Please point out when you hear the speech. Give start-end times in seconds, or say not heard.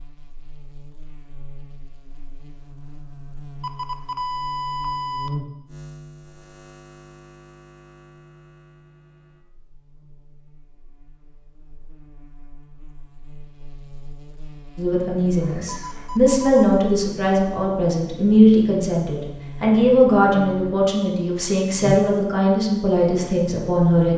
14.8-24.1.